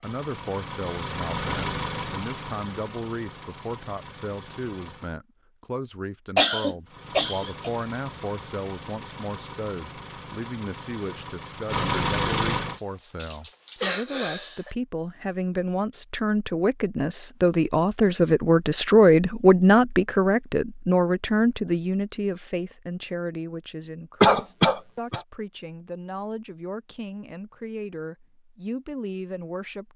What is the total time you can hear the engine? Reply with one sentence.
You can hear the engine for 11 seconds altogether.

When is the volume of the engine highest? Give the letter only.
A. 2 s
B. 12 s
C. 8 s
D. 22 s
B.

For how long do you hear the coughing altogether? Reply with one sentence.
You can hear the coughing for 4 seconds altogether.